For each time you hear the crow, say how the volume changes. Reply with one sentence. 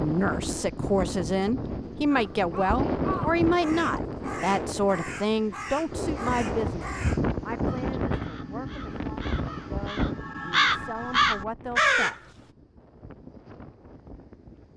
You can hear the crow from 2.1 to 12.2 s, getting louder.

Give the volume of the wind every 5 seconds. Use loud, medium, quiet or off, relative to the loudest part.
loud, loud, medium.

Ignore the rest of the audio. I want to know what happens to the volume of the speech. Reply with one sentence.
The volume of the speech goes down.